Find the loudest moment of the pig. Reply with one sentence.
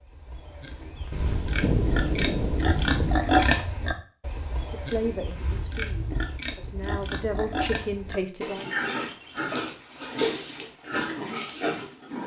The volume of the pig peaks at 3 seconds.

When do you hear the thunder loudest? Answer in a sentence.
The volume of the thunder peaks at 2 seconds.